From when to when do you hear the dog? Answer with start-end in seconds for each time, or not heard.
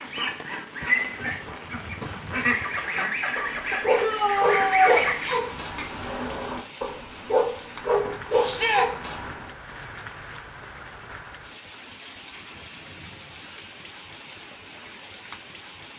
3.4-9.5.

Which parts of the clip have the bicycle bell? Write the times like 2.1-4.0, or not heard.
not heard.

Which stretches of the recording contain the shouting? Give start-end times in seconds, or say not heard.
4.0-5.0, 8.4-8.8.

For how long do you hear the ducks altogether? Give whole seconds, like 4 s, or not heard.
6 s.